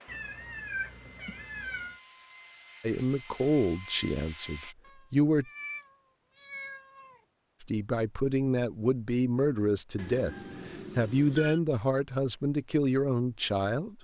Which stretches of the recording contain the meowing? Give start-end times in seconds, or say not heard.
0.1-2.0, 4.8-7.2, 9.9-11.6.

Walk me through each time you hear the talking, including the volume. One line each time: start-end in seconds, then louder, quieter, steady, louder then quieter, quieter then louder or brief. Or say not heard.
2.8-5.5 brief
7.6-13.9 steady.